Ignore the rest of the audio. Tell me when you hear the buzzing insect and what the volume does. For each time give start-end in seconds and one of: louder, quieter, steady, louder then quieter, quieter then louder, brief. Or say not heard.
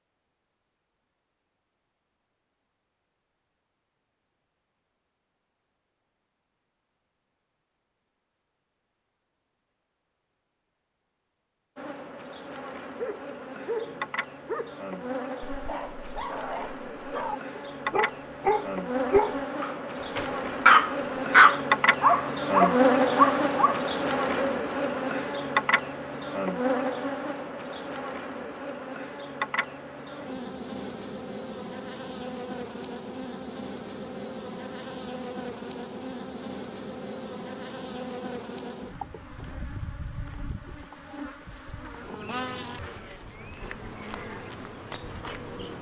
11.8-45.7 louder then quieter.